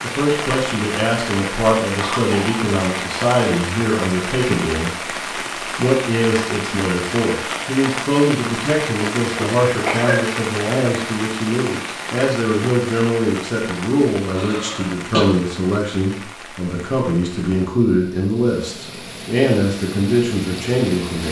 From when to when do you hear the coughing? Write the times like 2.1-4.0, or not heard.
2.0-2.6, 9.4-10.2, 14.3-15.2.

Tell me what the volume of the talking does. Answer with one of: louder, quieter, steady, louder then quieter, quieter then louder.
steady.